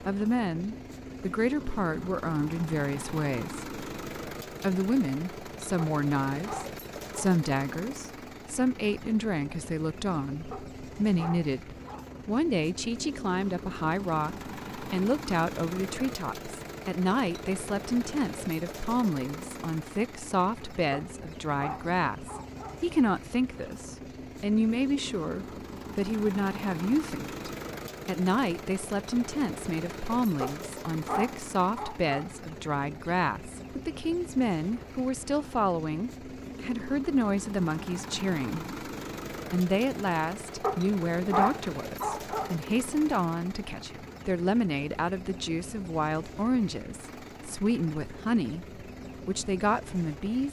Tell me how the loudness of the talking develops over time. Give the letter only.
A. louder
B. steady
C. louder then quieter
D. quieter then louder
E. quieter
B.